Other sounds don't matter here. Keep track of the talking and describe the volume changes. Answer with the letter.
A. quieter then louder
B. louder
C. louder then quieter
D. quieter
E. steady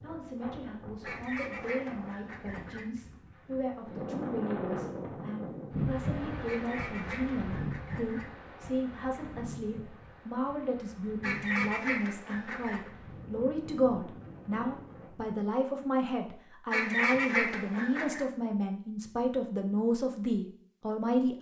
B.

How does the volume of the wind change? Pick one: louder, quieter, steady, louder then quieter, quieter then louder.
louder then quieter.